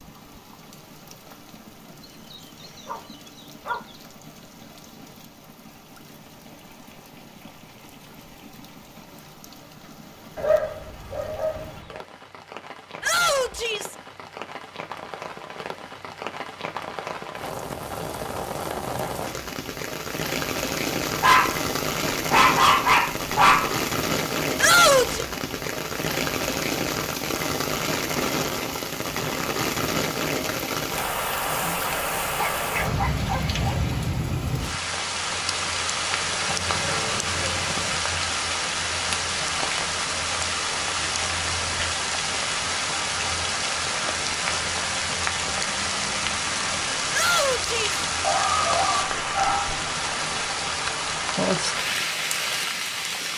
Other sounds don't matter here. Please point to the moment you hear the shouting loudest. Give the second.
25 s.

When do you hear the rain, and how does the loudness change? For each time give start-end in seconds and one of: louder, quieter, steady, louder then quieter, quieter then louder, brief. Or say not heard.
0.0-53.3 louder.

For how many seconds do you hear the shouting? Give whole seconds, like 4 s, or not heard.
2 s.